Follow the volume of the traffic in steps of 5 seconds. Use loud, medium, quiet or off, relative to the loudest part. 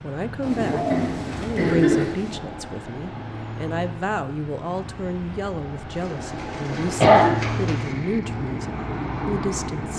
medium, loud.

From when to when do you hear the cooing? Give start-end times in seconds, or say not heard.
0.4-2.4, 5.9-8.0.